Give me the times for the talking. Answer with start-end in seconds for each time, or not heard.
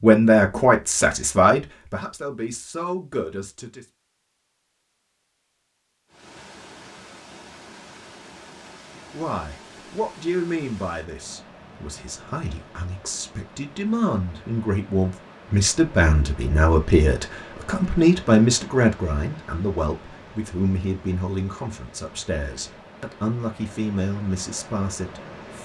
0.0-3.9, 9.1-25.6.